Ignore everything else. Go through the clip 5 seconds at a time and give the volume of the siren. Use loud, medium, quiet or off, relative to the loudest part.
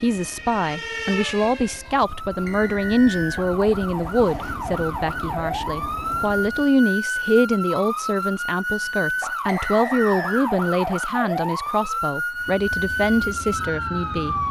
medium, loud, loud.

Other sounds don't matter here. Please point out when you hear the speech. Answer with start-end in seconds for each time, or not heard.
0.0-14.3.